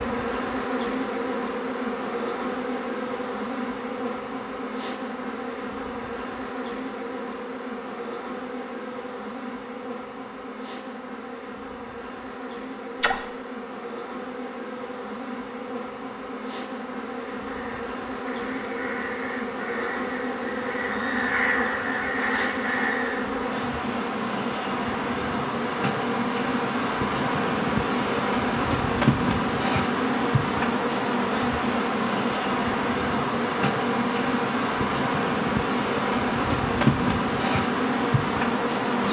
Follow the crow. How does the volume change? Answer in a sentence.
The loudness of the crow goes up.